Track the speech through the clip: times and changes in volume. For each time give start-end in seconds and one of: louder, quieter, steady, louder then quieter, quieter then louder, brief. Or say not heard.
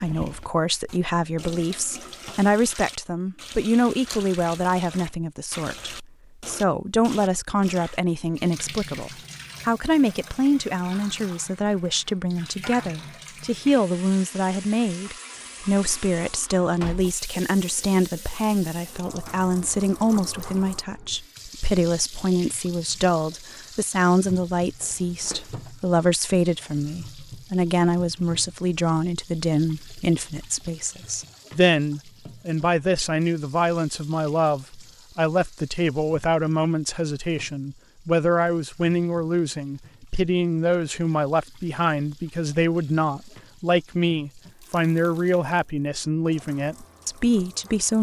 0.0-47.9 steady.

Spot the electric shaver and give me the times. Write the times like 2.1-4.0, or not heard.
not heard.